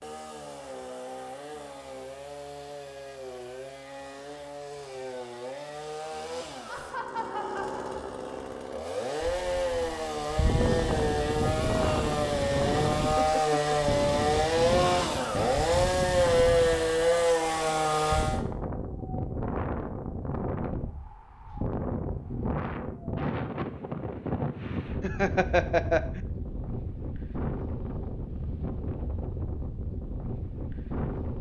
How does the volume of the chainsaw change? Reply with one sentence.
The volume of the chainsaw goes up.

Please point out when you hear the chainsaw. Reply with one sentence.
The chainsaw can be heard from 0.0 to 18.4 s.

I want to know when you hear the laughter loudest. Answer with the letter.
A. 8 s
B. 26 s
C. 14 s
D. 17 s
B.